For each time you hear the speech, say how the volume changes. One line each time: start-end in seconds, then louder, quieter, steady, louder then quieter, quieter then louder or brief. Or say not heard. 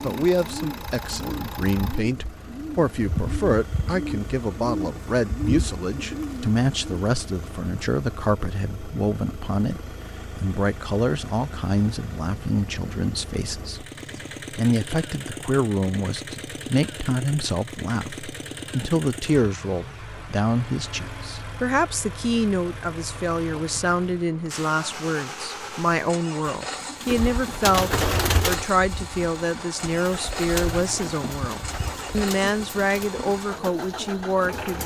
0.0-34.8 steady.